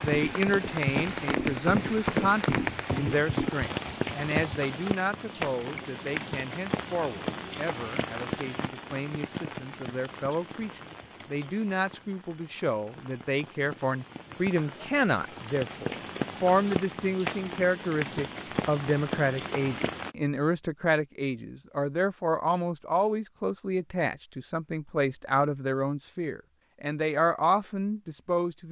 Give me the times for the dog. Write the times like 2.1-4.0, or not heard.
not heard.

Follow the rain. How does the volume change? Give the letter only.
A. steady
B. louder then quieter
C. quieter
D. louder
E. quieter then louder
E.